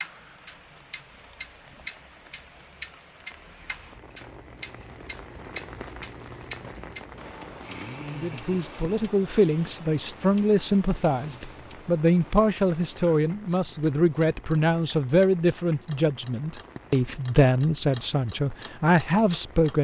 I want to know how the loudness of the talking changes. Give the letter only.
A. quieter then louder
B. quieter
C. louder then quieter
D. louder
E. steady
E.